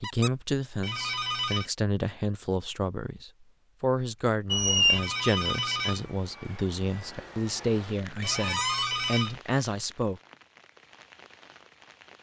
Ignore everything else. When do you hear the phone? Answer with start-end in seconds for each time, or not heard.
0.8-1.7, 4.8-6.0, 8.2-9.4.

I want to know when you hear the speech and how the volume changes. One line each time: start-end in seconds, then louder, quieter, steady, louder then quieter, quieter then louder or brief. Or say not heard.
0.0-10.2 steady.